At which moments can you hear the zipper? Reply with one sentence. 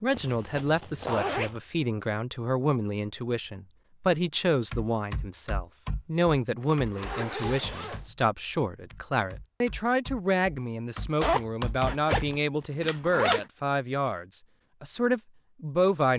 You can hear the zipper from 0.1 to 1.6 s, from 6.6 to 8.1 s and from 11.2 to 13.4 s.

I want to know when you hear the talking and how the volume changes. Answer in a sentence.
You can hear the talking from 0.0 to 16.1 s, at a steady volume.